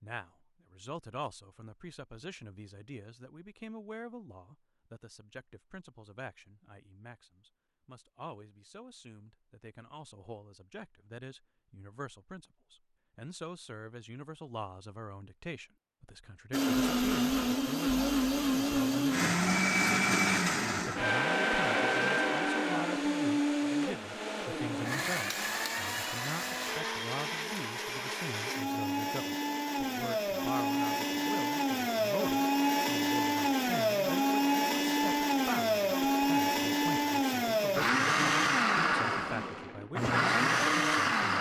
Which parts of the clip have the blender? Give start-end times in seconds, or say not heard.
16.5-41.3.